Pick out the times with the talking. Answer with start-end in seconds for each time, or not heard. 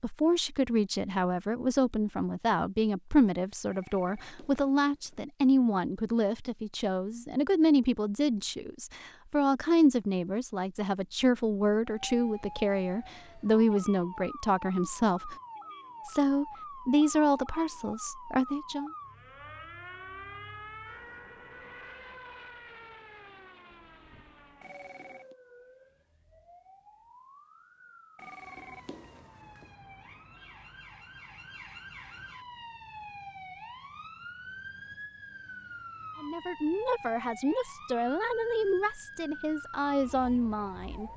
0.0-15.3, 16.1-18.9, 36.2-41.1.